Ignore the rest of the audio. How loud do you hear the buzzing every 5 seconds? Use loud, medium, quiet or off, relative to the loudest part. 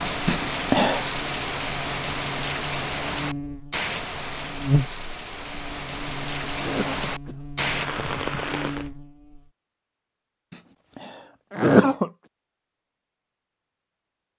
loud, medium, off.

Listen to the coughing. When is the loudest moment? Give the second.
12 s.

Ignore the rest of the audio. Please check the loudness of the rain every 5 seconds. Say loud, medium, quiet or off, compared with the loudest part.
loud, loud, off.